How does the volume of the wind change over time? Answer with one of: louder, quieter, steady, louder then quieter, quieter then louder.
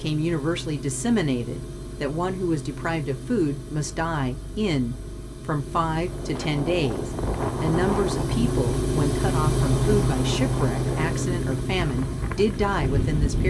steady.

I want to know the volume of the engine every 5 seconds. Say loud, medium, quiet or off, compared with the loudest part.
medium, loud, loud.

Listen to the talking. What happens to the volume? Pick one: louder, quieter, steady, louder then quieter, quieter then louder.
steady.